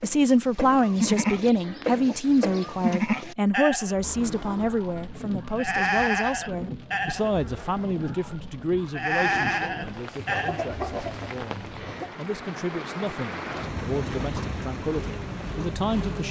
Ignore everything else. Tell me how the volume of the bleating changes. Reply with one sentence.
The volume of the bleating goes down, then up.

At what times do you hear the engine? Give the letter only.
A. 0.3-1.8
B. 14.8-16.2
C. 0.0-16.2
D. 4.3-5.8
B.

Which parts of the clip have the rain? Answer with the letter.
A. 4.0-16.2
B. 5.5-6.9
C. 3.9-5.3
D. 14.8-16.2
A.